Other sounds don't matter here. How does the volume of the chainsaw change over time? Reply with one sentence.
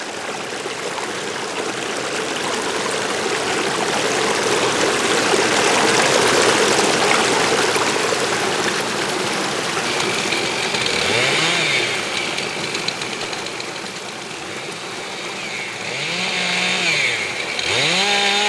The volume of the chainsaw goes down, then up.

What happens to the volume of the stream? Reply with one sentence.
The volume of the stream goes up, then down.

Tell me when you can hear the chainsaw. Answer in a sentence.
The chainsaw can be heard from 9.8 to 18.4 s.